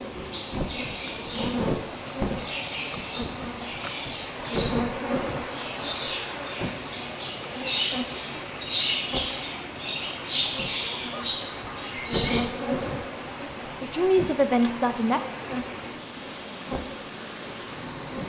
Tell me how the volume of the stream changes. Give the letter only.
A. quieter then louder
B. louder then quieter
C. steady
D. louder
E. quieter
C.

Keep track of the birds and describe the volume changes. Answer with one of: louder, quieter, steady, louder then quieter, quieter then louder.
louder.